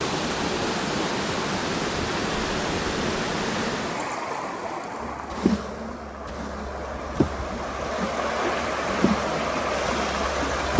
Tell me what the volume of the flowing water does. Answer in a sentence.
The loudness of the flowing water goes down, then up.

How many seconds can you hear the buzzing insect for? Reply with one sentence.
The buzzing insect can be heard for 6 seconds in total.